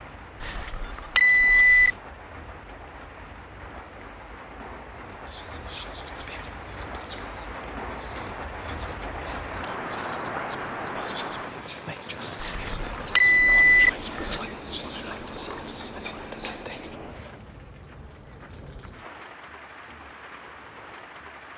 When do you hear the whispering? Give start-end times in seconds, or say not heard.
5.2-16.9.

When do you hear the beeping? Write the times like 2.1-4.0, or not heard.
0.4-1.9, 12.4-14.4.